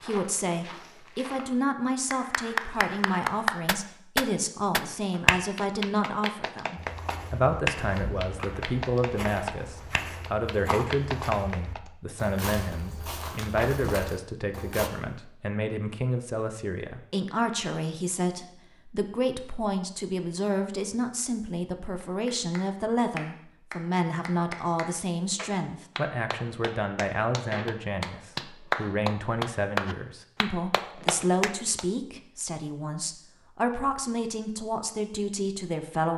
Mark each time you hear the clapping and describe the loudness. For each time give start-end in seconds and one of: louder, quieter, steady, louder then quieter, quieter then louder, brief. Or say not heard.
2.1-11.9 quieter
22.0-31.9 louder.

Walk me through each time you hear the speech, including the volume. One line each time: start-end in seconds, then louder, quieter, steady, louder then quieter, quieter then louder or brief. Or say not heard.
0.0-36.1 steady.